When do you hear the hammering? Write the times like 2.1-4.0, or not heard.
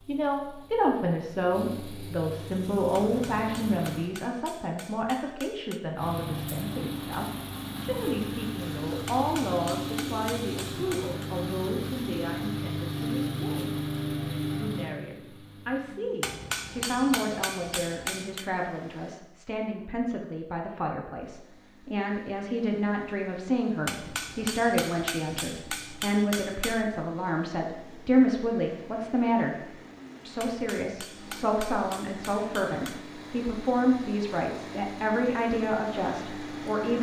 3.0-5.8, 9.1-11.3, 16.2-18.4, 23.9-26.9, 30.4-33.0.